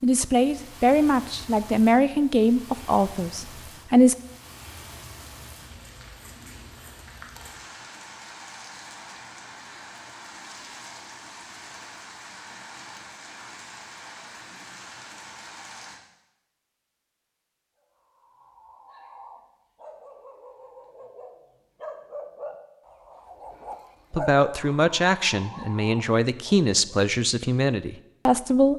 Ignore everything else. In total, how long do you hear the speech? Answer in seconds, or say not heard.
9 s.